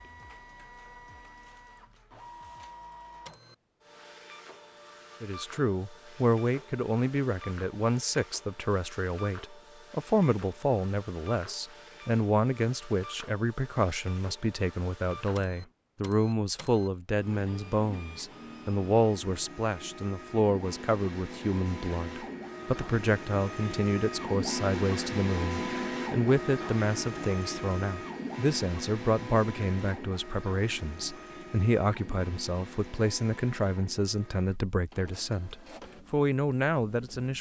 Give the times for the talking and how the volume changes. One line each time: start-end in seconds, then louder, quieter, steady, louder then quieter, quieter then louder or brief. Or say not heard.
5.2-37.3 steady.